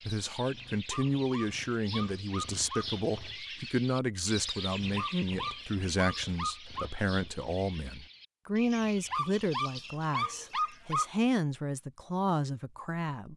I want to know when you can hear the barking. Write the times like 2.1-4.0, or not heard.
0.8-2.9, 5.0-6.8, 9.1-11.1.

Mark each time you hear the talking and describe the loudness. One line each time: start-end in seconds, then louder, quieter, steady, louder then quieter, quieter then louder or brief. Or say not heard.
0.1-13.3 steady.